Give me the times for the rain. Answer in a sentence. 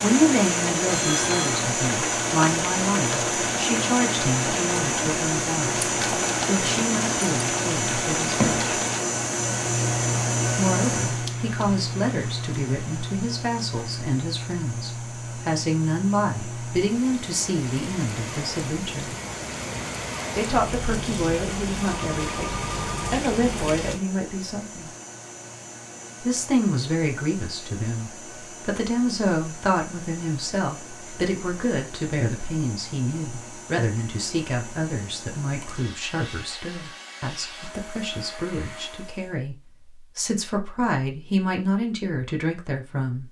The rain can be heard from 0.0 to 24.0 s.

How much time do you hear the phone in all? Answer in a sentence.
You can hear the phone for 2 seconds altogether.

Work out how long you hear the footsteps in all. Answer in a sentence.
You can't hear the footsteps here.